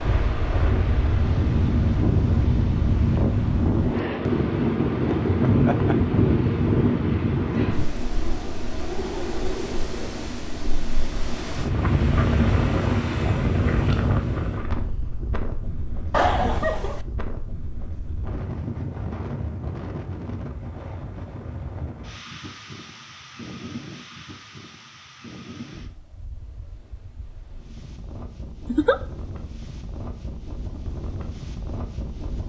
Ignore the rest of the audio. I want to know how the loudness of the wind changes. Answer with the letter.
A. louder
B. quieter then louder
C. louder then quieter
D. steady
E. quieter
E.